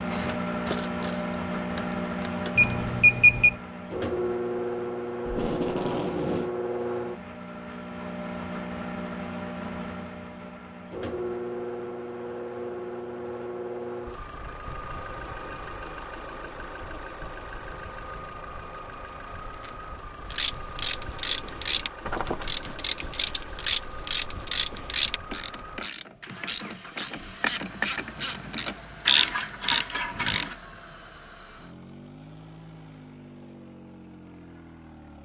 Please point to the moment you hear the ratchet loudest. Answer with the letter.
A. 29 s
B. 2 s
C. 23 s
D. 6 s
A.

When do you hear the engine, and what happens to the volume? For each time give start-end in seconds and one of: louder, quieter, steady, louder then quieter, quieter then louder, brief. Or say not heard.
0.0-35.2 quieter.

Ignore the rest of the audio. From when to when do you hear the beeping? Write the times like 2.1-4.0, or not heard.
2.5-3.5.